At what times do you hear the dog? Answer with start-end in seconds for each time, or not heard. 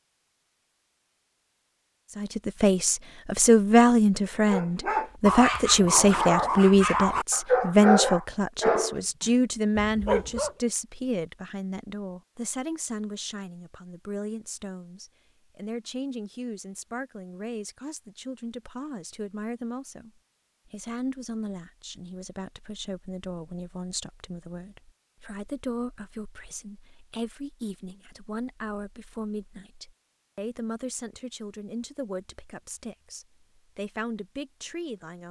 4.5-10.6.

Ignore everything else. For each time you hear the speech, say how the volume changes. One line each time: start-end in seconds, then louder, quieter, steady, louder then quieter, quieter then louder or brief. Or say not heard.
2.1-35.2 quieter.